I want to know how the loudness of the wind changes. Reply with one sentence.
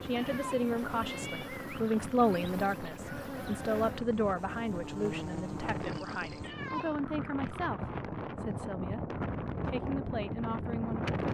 The volume of the wind goes up.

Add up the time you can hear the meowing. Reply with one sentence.
You can hear the meowing for 2 seconds altogether.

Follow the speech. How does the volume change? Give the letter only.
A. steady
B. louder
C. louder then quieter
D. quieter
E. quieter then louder
D.